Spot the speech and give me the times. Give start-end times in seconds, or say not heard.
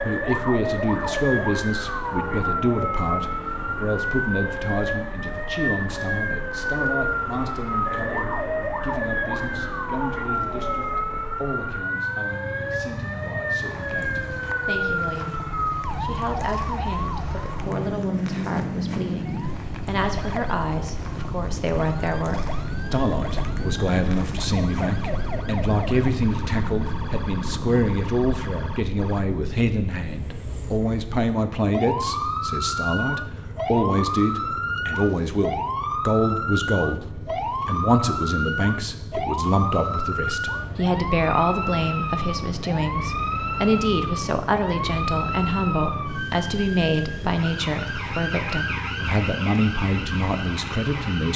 0.0-51.3.